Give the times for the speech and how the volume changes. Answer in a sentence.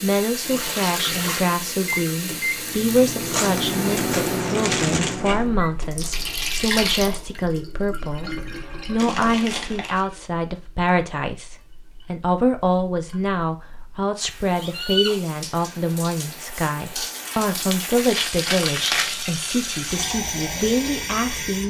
You can hear the speech from 0.0 to 21.6 s, at a steady volume.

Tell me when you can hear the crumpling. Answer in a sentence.
The crumpling can be heard from 3.2 to 5.4 s, from 8.9 to 10.1 s and from 17.4 to 19.1 s.